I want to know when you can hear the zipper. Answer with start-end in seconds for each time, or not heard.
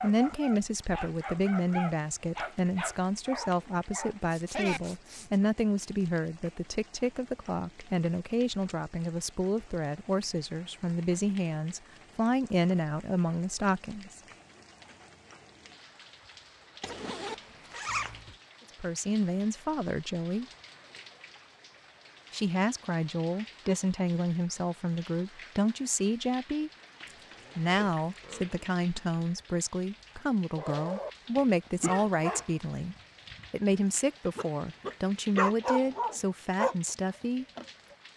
4.2-5.4, 16.8-18.4, 27.1-28.7.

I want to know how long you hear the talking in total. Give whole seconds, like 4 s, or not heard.
30 s.